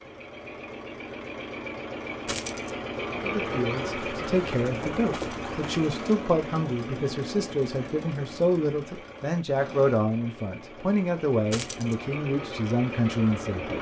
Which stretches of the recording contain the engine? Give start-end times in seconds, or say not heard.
0.0-13.7.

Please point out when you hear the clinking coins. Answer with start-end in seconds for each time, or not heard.
2.2-2.7, 5.1-5.5, 11.5-11.9.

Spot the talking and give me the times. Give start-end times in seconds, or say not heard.
3.1-13.7.